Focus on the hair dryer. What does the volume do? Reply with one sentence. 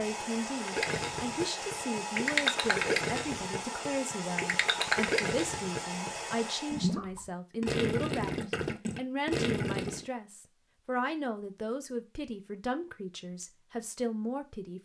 The loudness of the hair dryer stays about the same.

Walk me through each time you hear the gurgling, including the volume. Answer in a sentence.
The gurgling can be heard from 0.6 to 10.1 s, at a steady volume.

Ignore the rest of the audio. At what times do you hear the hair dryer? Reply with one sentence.
You can hear the hair dryer from 0.0 to 7.0 s.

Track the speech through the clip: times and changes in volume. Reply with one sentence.
The speech can be heard from 0.0 to 14.8 s, at a steady volume.